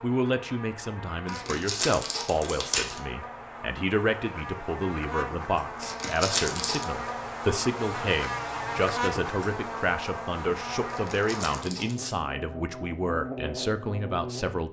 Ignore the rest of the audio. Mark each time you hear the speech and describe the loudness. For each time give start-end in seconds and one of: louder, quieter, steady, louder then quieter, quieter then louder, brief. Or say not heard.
0.0-14.6 steady.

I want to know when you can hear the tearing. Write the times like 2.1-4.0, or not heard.
1.2-3.0, 5.8-6.8, 10.9-12.2.